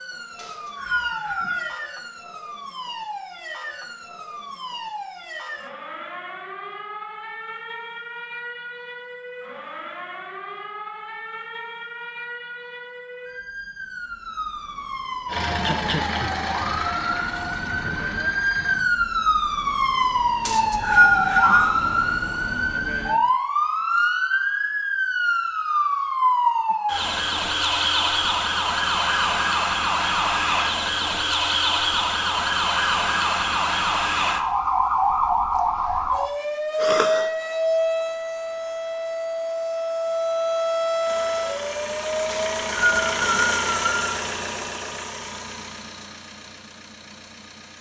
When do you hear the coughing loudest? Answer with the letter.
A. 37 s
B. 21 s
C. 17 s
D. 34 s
A.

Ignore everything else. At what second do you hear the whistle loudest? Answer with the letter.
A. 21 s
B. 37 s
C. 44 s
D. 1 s
A.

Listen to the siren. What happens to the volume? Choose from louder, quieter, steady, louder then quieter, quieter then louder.
louder.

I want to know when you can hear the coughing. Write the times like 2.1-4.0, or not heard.
15.6-16.4, 36.8-37.3.